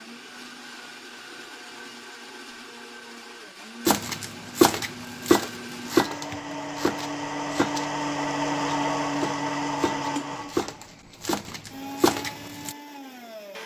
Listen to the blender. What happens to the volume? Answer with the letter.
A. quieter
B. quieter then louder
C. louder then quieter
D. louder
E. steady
C.